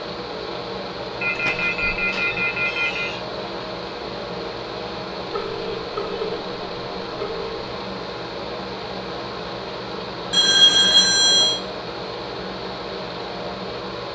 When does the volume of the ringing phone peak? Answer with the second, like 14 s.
11 s.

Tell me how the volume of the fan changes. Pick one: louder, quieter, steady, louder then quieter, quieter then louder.
steady.